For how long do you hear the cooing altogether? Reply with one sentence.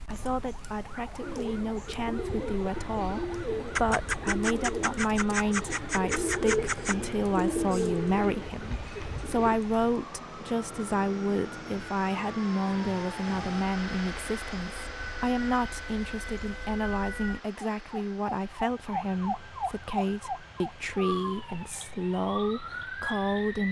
The cooing can be heard for 8 seconds in total.